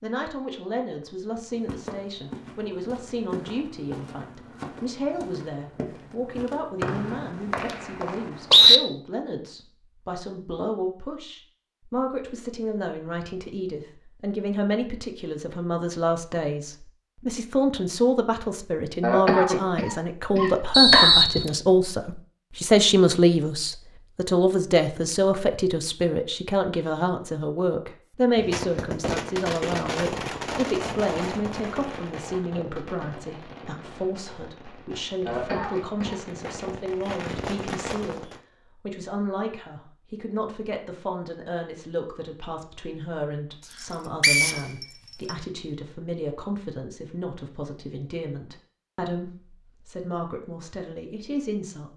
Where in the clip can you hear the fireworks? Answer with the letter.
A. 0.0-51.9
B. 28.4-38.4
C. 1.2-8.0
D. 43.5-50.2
B.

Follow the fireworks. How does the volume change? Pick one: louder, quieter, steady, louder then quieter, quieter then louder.
quieter then louder.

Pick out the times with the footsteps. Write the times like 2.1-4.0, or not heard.
1.2-8.0.